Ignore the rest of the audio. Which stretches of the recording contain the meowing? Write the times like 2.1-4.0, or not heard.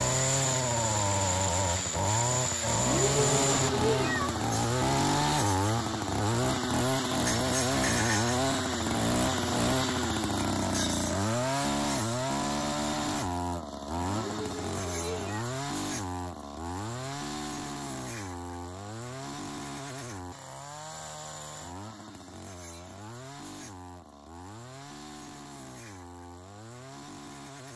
2.7-4.4, 13.9-15.5.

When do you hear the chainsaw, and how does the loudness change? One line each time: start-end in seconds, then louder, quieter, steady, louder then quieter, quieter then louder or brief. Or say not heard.
0.0-27.7 quieter.